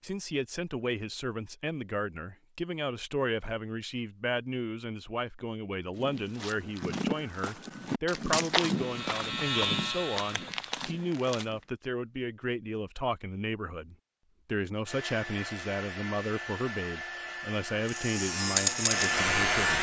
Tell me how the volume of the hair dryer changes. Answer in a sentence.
The loudness of the hair dryer goes up.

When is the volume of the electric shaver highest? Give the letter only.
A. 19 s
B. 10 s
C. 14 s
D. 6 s
A.